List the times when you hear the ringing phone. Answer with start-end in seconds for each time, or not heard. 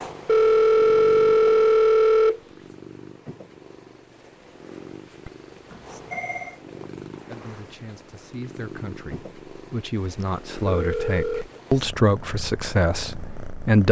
0.2-2.4, 5.2-6.5, 10.2-11.6.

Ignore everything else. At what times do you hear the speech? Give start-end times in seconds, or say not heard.
7.2-13.8.